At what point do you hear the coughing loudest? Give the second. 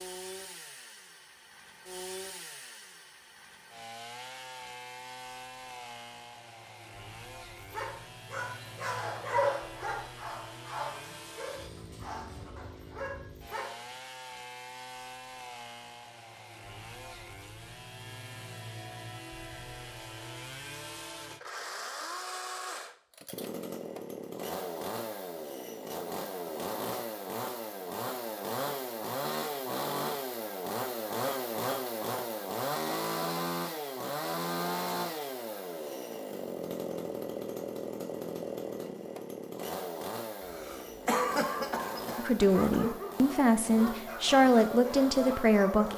41 s.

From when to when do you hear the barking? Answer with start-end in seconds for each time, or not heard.
7.7-13.8, 42.5-45.9.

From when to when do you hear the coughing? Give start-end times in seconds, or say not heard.
40.4-43.0.